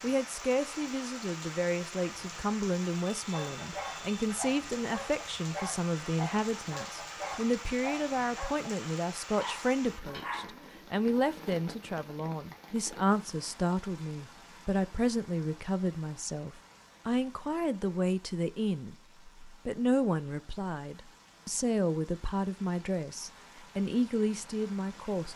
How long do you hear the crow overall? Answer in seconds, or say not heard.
not heard.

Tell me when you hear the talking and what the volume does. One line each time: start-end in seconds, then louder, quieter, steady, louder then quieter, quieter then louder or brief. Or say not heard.
0.0-25.3 steady.